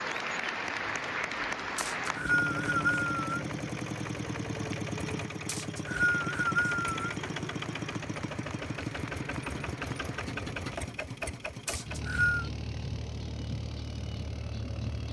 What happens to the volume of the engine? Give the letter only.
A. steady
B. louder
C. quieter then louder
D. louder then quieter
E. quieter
A.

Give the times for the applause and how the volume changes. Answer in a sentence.
You can hear the applause from 0.0 to 10.3 s, getting quieter.